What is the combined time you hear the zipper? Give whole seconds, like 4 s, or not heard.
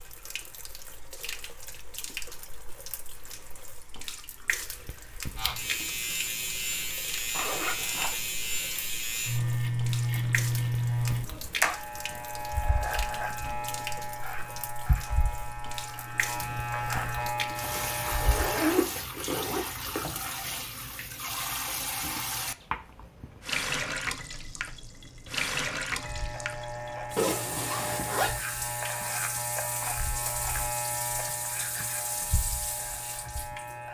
5 s.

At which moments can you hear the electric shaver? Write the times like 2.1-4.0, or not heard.
5.3-18.9, 25.9-33.8.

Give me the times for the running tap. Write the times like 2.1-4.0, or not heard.
0.0-33.8.